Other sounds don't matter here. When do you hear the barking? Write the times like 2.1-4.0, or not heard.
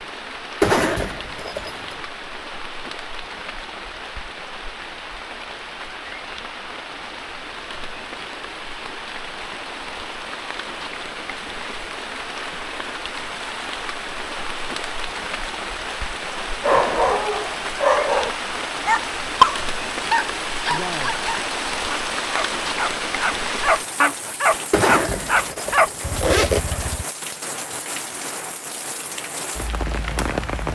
16.4-27.1.